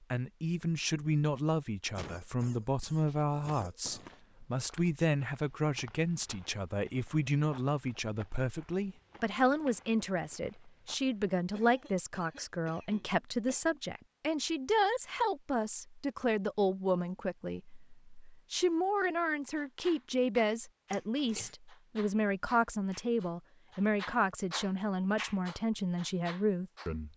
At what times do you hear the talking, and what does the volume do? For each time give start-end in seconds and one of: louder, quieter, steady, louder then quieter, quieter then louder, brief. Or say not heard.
0.1-27.1 steady.